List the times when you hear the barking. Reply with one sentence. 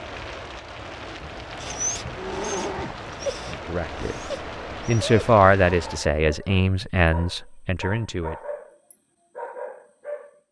You can hear the barking from 1.1 to 10.4 s.